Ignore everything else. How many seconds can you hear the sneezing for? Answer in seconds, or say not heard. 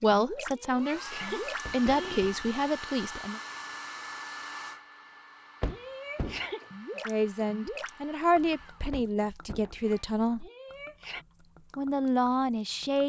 4 s.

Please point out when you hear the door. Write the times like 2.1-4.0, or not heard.
1.6-2.5, 5.6-6.5, 8.9-9.8.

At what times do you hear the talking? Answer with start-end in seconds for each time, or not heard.
0.0-3.4, 7.0-10.4, 11.8-13.0.